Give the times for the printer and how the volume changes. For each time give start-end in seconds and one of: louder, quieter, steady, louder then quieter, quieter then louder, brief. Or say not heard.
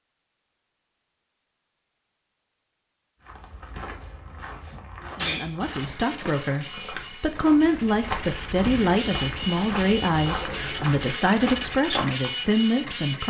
5.6-13.2 louder.